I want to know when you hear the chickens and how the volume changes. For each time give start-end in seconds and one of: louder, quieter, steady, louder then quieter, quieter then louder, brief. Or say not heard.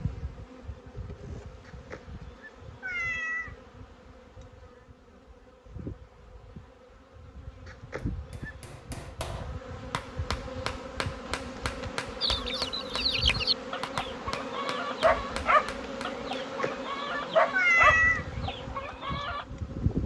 12.2-19.4 steady.